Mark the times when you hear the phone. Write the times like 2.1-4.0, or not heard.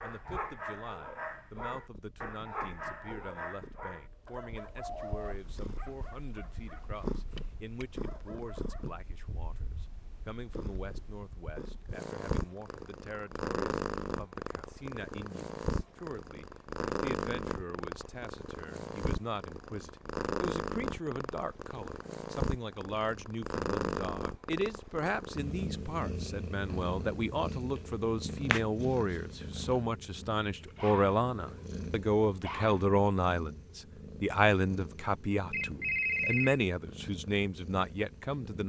4.8-5.3, 35.5-36.6.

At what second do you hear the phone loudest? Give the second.
36 s.